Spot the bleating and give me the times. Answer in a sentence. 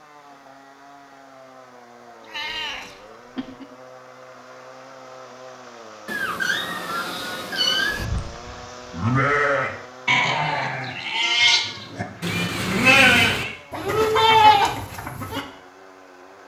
You can hear the bleating from 7.8 to 15.4 s.